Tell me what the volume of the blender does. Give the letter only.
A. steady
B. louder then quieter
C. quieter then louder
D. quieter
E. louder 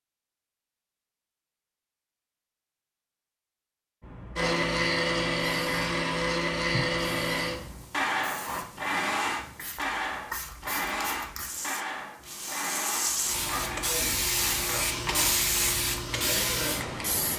D.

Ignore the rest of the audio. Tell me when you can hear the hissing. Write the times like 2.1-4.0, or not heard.
4.0-17.3.